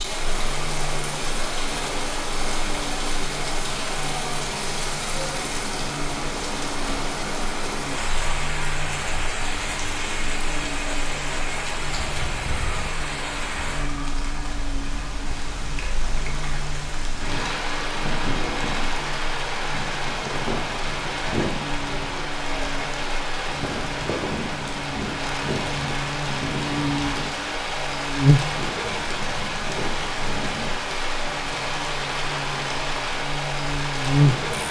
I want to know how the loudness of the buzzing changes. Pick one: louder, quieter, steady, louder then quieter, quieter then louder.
louder.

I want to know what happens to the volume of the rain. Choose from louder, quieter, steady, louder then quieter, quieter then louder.
steady.